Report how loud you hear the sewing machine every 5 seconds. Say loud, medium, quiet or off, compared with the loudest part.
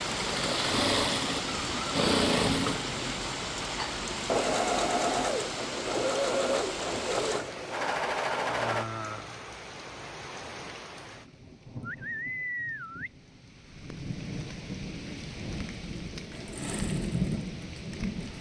loud, loud, off, quiet.